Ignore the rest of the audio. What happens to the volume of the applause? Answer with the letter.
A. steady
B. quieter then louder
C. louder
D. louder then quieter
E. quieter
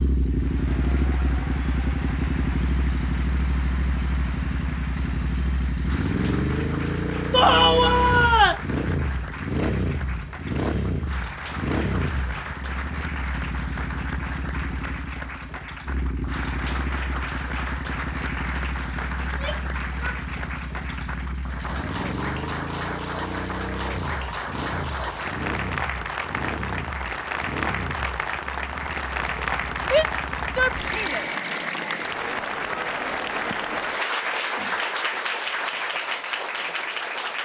C.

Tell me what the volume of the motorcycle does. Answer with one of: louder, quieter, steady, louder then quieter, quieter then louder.
quieter.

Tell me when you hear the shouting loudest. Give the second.
8 s.